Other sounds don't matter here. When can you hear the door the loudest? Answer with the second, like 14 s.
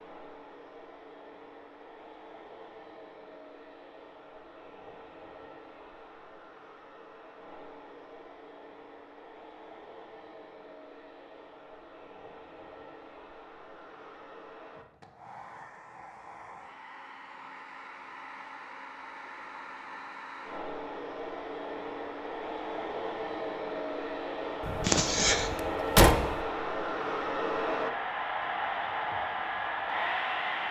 26 s.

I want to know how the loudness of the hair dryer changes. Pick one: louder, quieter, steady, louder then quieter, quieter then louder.
louder.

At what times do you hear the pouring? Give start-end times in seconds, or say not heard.
not heard.